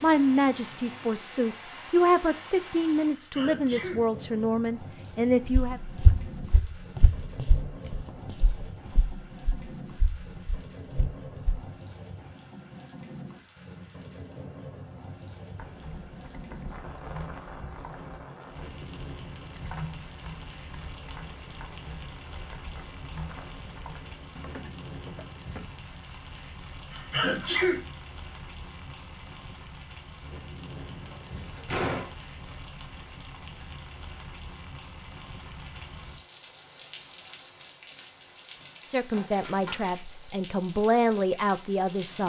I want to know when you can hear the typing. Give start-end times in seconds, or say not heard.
15.5-25.6.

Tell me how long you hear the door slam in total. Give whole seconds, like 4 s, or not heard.
2 s.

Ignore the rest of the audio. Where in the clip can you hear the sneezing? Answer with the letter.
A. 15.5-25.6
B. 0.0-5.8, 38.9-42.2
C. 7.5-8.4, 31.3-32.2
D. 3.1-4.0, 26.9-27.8
D.